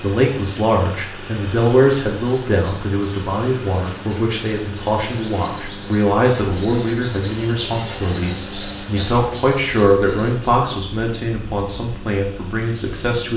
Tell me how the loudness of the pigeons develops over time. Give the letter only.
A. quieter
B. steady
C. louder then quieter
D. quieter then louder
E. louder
E.